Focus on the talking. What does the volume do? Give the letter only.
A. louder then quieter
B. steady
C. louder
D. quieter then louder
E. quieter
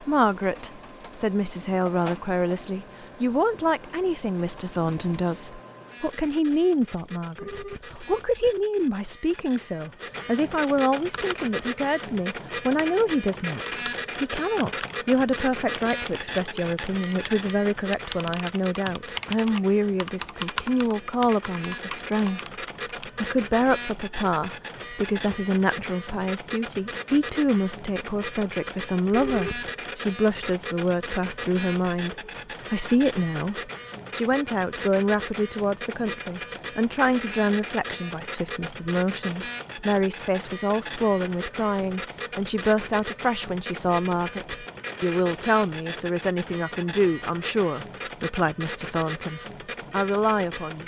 B.